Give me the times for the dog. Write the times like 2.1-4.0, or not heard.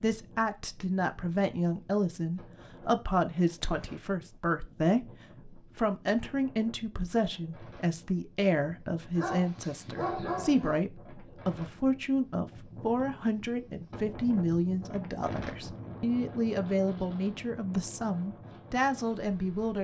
9.2-10.8.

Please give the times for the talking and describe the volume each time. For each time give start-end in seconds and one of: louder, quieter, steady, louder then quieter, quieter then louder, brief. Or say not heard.
0.0-19.7 steady.